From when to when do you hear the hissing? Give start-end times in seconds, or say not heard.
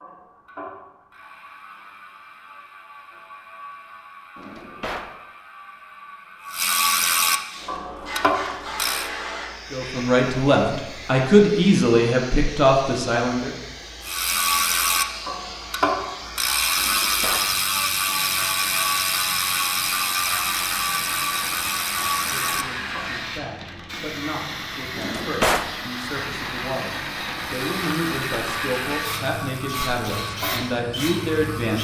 7.4-31.8.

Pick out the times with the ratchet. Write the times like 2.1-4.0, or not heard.
0.0-9.1, 14.0-23.1, 27.6-31.8.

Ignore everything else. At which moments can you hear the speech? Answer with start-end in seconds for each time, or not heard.
9.7-13.6, 22.1-31.8.